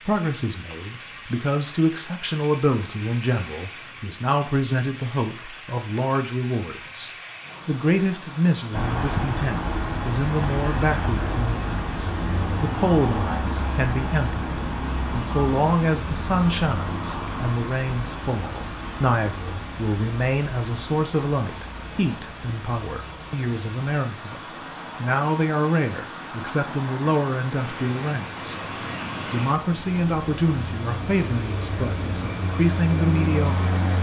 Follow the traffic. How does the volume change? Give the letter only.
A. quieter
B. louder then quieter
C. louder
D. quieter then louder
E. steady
D.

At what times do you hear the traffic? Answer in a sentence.
The traffic can be heard from 8.7 to 33.9 s.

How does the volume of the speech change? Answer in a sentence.
The loudness of the speech stays about the same.